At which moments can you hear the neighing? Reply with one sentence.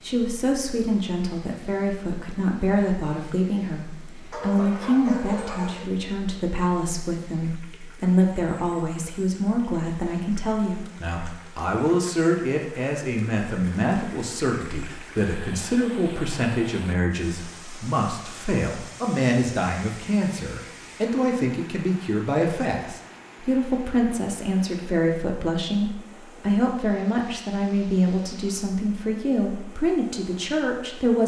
The neighing can't be heard in this clip.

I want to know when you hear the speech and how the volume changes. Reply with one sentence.
You can hear the speech from 0.0 to 31.2 s, at a steady volume.